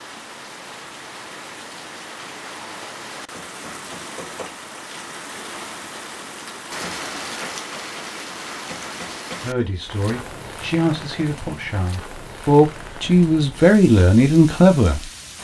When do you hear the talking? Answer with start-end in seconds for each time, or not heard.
9.4-15.0.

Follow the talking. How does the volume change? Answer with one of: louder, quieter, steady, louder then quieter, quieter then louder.
louder.